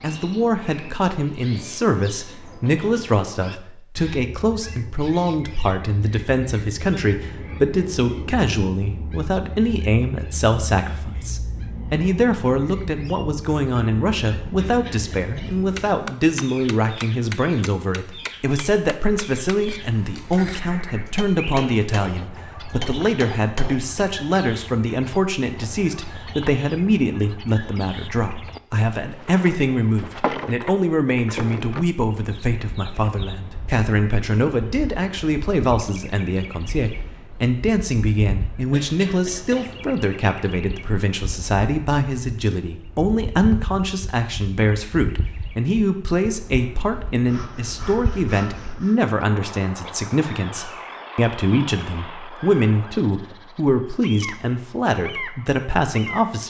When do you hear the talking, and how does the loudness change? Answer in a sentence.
You can hear the talking from 0.0 to 56.4 s, at a steady volume.